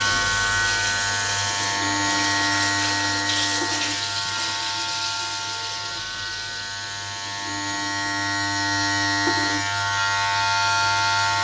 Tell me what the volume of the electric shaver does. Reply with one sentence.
The loudness of the electric shaver goes down, then up.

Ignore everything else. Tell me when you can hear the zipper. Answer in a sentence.
The zipper can't be heard in this clip.